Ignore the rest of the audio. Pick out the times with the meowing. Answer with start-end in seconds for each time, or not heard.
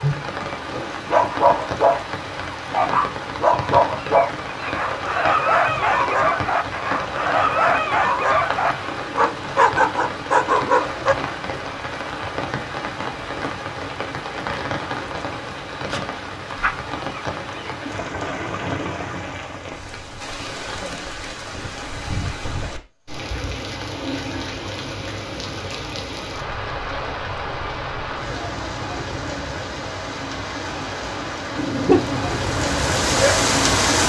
not heard.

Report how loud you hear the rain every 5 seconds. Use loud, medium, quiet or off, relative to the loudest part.
medium, medium, medium, medium, medium, medium, loud.